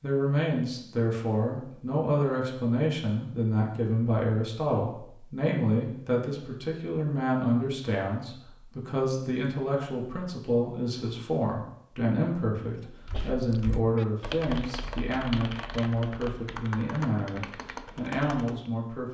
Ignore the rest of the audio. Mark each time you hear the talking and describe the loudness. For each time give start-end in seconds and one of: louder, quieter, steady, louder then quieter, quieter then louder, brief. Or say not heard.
0.0-19.0 steady.